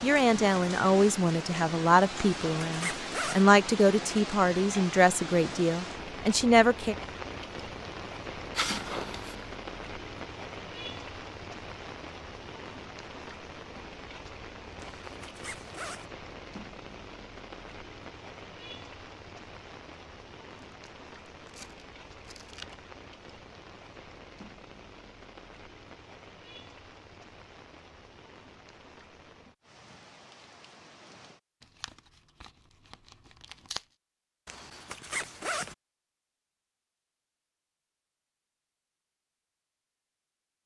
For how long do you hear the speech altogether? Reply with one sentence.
You can hear the speech for 7 seconds altogether.